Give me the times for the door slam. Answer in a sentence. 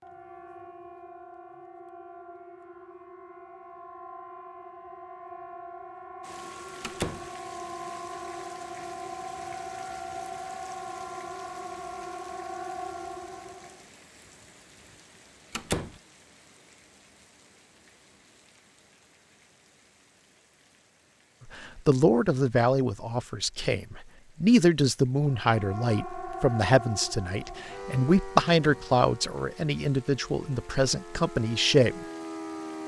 You can hear the door slam from 6.8 to 7.3 s, from 15.5 to 16.0 s and from 28.4 to 28.9 s.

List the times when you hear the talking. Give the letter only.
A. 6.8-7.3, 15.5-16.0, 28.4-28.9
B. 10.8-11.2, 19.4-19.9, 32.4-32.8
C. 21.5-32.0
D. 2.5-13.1
C.